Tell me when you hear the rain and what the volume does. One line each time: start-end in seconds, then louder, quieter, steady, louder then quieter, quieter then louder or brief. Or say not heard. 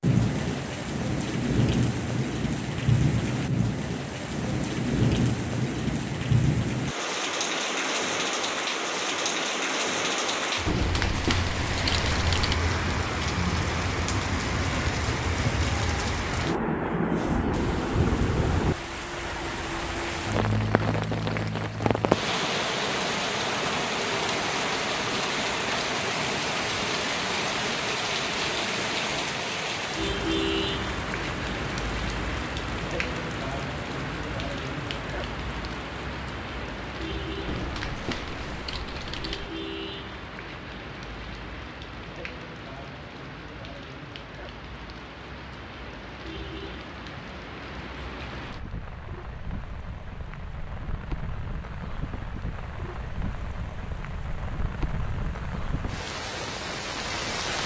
0.0-57.6 quieter.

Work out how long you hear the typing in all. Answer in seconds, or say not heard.
4 s.